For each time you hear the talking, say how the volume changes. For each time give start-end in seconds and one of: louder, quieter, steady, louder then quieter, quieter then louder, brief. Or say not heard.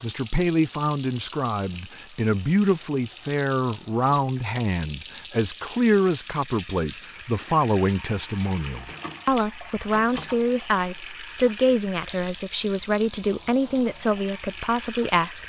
0.0-15.4 steady.